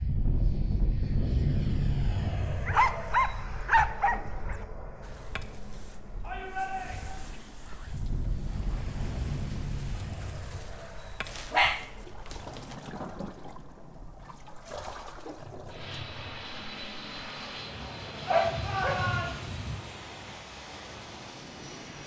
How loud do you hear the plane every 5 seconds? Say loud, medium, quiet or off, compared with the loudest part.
loud, medium, quiet, medium, medium.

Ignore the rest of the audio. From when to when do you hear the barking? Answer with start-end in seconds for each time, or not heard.
2.6-4.7, 11.2-12.6, 18.3-19.9.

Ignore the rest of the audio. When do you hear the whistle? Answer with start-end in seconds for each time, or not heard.
not heard.